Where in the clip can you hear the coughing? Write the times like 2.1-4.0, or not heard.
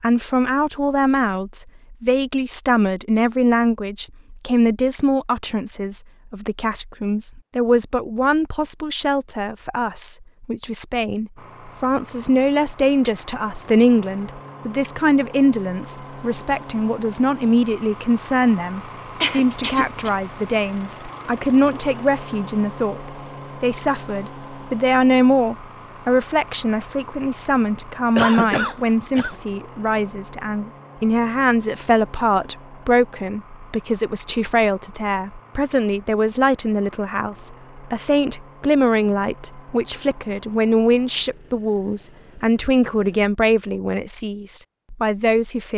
19.2-20.1, 28.1-29.4.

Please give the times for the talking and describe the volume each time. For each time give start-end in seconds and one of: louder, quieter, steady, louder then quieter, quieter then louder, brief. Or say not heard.
0.0-45.7 steady.